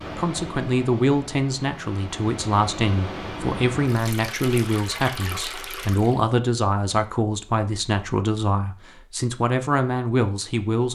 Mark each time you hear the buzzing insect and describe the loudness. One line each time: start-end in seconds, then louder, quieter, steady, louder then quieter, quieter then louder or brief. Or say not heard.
not heard.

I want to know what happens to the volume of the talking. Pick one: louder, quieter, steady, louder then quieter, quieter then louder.
steady.